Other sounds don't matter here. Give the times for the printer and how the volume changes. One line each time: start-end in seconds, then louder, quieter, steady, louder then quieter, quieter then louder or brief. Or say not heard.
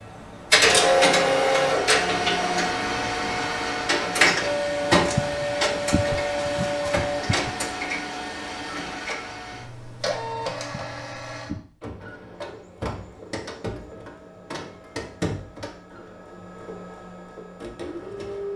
0.1-18.5 quieter.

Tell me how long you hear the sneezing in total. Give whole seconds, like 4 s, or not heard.
3 s.